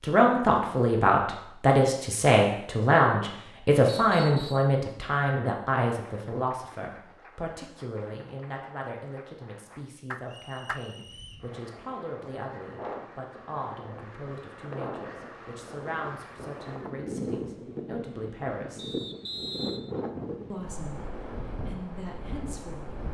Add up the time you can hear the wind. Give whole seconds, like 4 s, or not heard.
12 s.